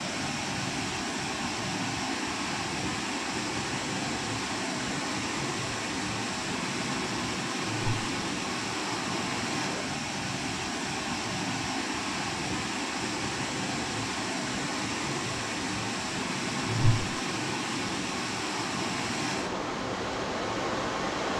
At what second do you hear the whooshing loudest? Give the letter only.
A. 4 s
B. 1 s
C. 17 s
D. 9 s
C.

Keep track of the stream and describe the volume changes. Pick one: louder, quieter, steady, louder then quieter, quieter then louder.
steady.